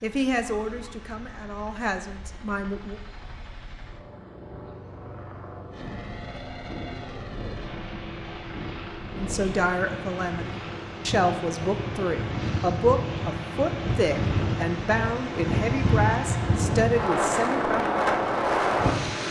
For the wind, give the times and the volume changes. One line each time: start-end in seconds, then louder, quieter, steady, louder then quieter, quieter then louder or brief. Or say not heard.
5.8-19.2 louder.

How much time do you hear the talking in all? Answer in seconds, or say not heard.
12 s.